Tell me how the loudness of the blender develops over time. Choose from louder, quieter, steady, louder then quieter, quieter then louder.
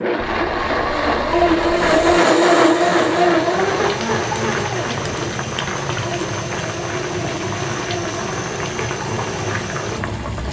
quieter.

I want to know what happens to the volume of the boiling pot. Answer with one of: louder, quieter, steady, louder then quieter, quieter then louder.
steady.